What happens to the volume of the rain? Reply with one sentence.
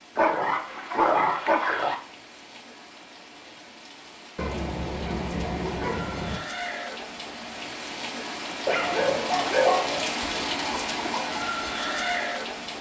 The loudness of the rain goes up.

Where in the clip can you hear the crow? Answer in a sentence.
The crow can't be heard in this clip.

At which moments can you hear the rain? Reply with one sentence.
You can hear the rain from 0.0 to 12.7 s.